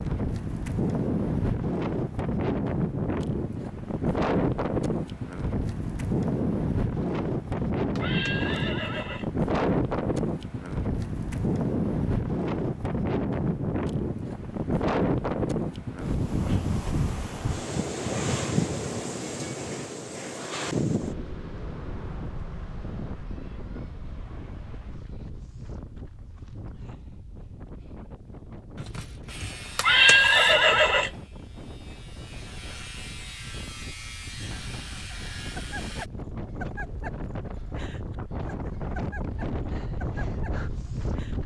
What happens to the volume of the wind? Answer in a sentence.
The volume of the wind goes down, then up.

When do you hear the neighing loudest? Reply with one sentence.
The volume of the neighing peaks at 30 seconds.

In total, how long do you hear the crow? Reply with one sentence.
You can't hear the crow here.